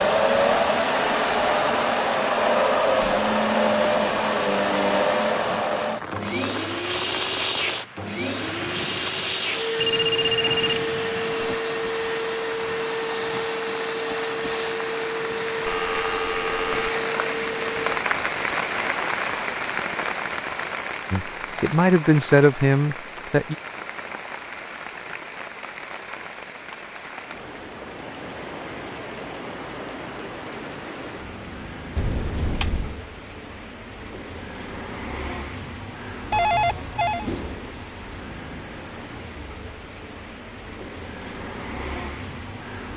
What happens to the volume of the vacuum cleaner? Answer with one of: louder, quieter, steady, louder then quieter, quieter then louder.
quieter.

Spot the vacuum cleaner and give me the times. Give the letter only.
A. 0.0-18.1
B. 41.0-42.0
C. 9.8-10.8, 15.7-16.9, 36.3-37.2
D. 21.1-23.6
A.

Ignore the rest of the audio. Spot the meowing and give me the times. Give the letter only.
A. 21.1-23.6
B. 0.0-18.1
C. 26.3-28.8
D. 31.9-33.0
D.